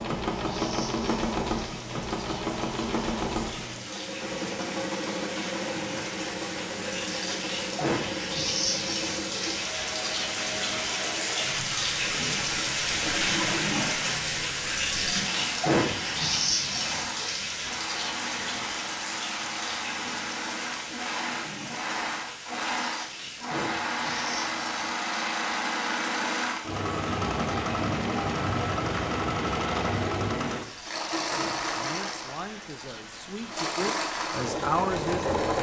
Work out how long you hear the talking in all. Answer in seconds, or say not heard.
4 s.